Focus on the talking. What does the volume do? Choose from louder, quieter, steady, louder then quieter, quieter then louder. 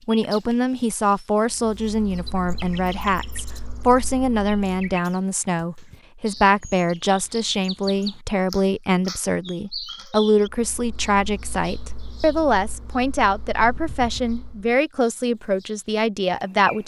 steady.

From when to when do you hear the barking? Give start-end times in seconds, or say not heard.
not heard.